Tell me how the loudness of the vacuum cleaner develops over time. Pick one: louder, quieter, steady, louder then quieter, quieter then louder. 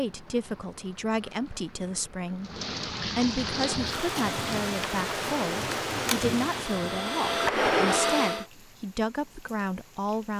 louder.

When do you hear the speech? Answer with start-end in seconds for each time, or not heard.
0.0-2.5, 3.1-10.3.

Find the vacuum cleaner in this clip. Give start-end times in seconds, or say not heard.
3.4-8.4.